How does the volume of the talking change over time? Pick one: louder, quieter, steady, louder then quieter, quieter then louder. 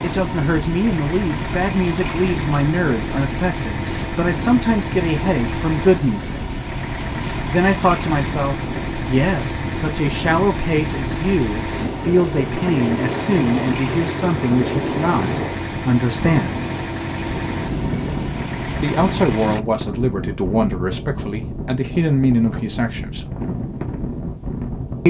steady.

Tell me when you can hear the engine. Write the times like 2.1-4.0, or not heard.
0.0-19.6.